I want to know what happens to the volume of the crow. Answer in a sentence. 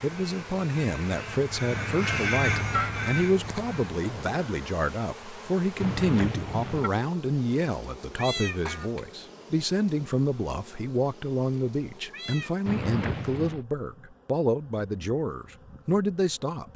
The loudness of the crow goes up, then down.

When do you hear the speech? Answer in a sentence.
The speech can be heard from 0.0 to 16.7 s.